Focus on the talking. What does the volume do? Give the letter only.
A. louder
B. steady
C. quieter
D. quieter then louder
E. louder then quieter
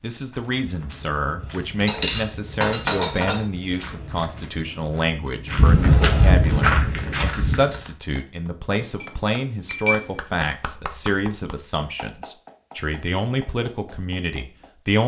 B.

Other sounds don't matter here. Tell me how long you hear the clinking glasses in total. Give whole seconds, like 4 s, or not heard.
3 s.